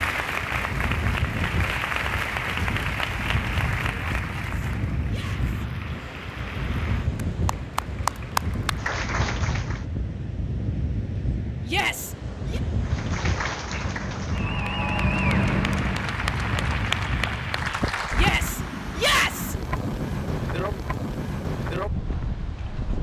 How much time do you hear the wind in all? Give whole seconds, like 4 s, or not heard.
23 s.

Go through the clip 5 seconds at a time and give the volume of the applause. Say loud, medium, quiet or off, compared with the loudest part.
loud, loud, loud, loud, off.